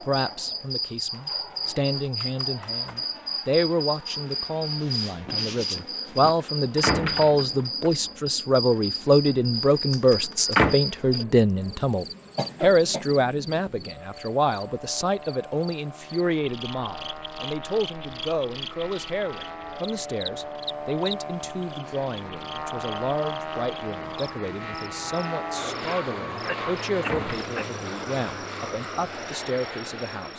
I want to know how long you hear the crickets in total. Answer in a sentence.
You can hear the crickets for 30 seconds altogether.